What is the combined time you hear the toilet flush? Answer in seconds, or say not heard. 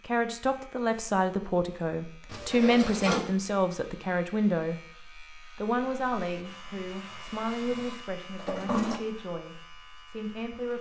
2 s.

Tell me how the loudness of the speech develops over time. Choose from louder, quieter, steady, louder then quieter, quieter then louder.
quieter.